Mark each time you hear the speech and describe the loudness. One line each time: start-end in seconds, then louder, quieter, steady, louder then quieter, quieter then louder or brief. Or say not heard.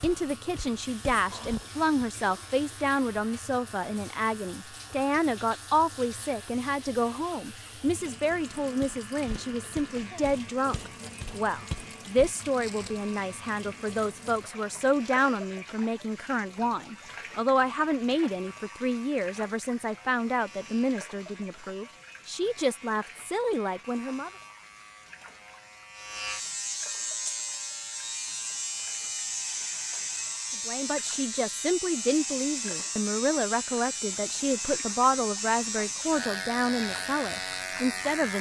0.0-24.3 steady
30.6-38.3 steady.